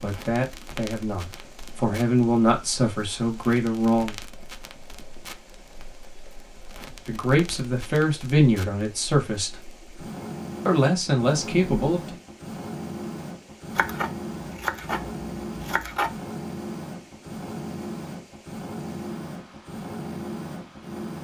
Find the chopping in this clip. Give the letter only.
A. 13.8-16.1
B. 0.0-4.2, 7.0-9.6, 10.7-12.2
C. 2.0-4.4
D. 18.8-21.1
A.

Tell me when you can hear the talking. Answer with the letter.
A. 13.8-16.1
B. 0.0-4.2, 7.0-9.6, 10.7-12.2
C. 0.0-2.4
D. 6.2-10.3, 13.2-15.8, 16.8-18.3
B.